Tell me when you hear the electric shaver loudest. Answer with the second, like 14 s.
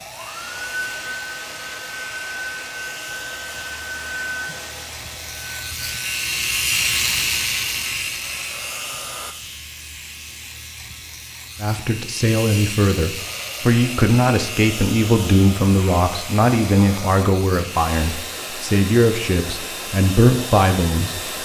7 s.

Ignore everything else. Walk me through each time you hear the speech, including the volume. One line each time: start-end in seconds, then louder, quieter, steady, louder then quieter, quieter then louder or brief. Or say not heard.
11.6-21.4 steady.